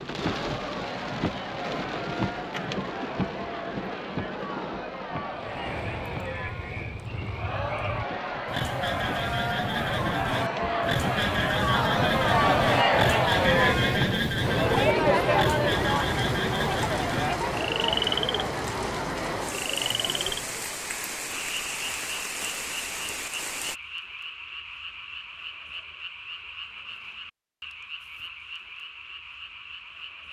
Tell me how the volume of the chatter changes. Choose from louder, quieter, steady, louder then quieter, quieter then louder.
louder then quieter.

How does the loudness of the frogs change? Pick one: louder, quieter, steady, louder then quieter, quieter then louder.
louder then quieter.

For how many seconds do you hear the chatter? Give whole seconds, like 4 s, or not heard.
21 s.